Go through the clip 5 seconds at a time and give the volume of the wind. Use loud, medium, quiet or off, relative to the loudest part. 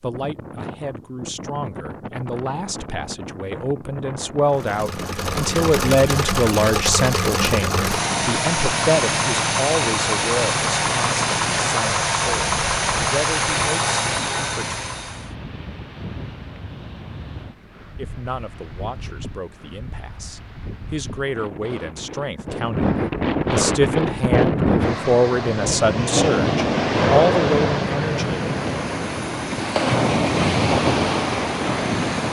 quiet, quiet, quiet, quiet, loud, loud, loud.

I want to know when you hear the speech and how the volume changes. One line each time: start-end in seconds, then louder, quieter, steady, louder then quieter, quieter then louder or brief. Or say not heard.
0.0-14.8 louder then quieter
17.9-28.4 louder.